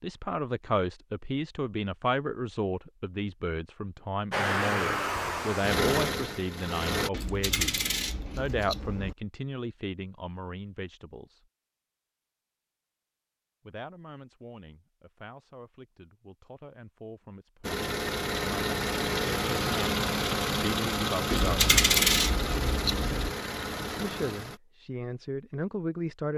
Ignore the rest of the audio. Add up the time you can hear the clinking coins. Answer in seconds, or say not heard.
4 s.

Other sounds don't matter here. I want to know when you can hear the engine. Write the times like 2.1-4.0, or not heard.
4.3-7.1, 17.6-24.6.